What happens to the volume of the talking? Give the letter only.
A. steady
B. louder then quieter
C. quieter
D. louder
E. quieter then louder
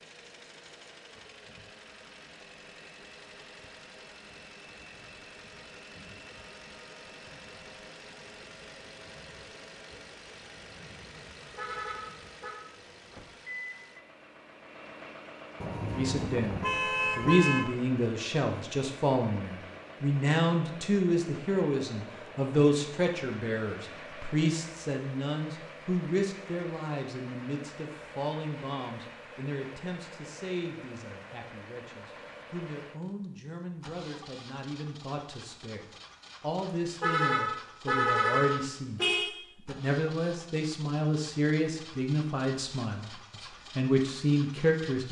E.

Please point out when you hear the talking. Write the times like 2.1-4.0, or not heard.
15.9-39.0, 39.6-45.0.